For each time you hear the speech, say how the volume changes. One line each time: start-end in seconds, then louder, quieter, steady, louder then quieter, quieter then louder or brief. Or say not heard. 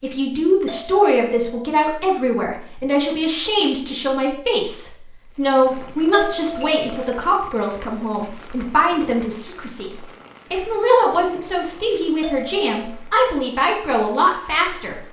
0.0-15.0 steady.